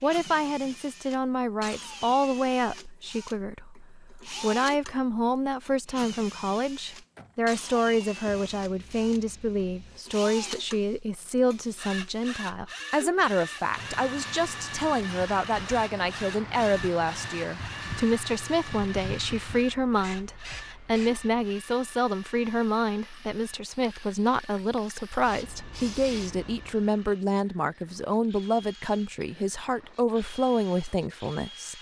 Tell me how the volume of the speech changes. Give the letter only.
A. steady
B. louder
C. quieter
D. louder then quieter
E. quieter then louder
A.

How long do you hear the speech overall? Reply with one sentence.
You can hear the speech for 32 seconds altogether.